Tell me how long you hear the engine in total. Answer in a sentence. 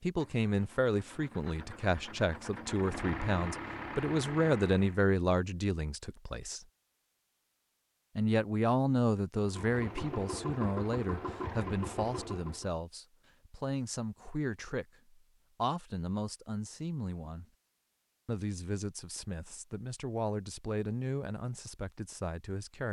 You can hear the engine for 8 seconds altogether.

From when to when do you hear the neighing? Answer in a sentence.
The neighing can't be heard in this clip.